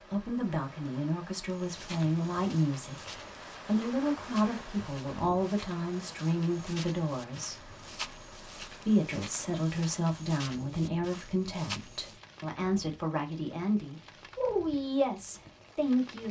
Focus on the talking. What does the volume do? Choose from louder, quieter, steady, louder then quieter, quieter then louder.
steady.